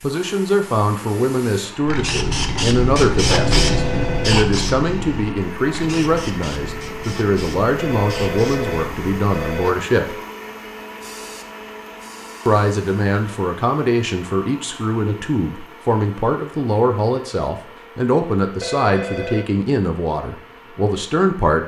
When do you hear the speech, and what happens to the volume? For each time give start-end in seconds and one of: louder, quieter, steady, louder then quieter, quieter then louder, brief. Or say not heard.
0.0-10.2 steady
12.4-21.6 steady.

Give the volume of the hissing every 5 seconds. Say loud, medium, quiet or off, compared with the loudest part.
loud, medium, quiet, off, off.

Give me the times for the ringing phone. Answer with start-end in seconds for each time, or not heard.
3.3-4.5, 7.8-9.7, 18.6-19.5.